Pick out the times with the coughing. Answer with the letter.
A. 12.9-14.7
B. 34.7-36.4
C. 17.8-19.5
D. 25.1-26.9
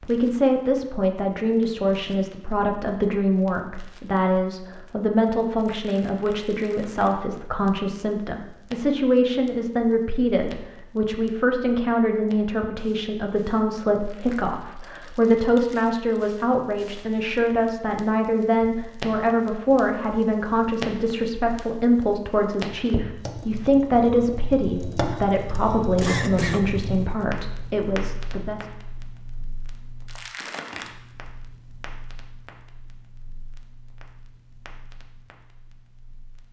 D.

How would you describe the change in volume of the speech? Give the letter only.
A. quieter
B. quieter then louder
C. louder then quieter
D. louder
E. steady
E.